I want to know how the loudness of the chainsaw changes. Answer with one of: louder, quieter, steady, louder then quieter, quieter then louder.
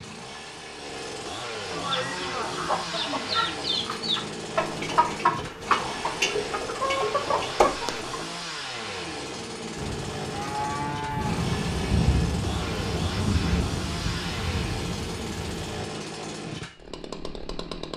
steady.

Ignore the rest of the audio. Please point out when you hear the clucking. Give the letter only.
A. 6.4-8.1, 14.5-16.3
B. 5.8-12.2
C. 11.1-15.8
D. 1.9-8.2
D.